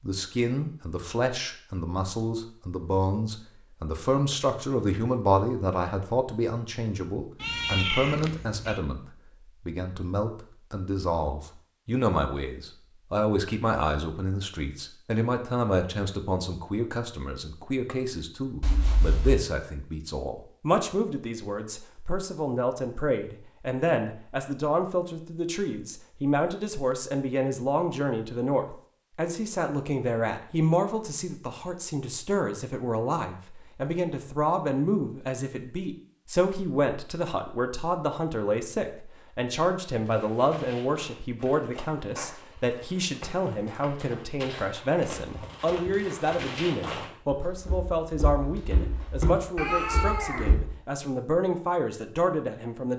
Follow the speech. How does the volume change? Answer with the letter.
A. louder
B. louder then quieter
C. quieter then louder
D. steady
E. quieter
D.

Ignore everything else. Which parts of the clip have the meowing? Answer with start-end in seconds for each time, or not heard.
7.4-8.8, 18.6-19.4, 49.5-50.5.